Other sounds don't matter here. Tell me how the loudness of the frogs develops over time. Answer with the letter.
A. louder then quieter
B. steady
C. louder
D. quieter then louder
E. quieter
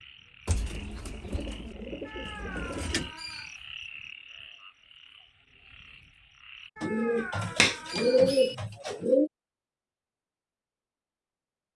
A.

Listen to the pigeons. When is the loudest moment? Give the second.
8 s.